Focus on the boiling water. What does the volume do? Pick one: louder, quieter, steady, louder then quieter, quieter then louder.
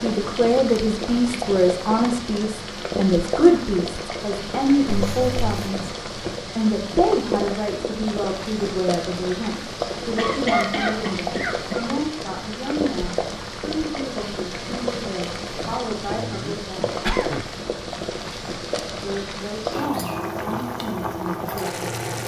steady.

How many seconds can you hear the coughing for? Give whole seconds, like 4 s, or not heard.
4 s.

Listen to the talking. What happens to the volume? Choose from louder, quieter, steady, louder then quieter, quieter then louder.
quieter.